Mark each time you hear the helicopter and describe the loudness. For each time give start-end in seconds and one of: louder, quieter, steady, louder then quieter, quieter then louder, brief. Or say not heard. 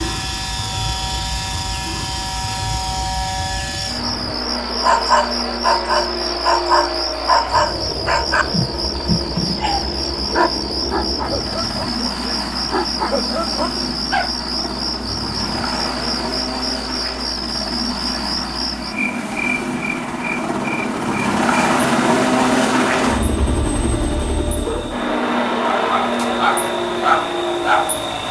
0.0-28.2 louder.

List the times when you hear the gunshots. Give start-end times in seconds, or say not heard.
not heard.